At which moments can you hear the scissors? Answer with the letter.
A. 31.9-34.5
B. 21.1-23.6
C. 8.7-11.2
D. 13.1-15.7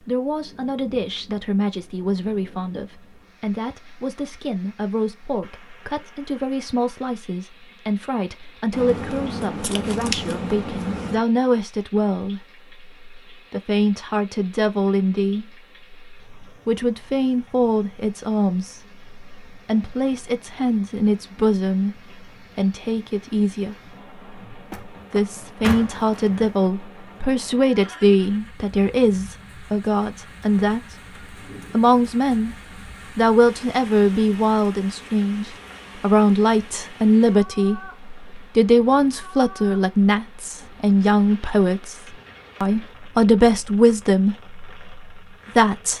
C.